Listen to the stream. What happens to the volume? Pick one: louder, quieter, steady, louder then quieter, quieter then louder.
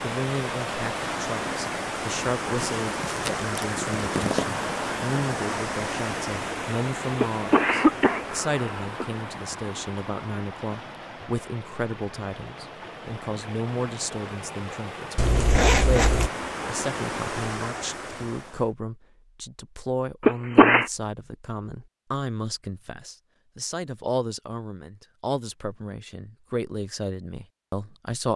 quieter then louder.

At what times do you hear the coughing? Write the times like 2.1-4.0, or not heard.
7.2-9.1, 20.2-20.9.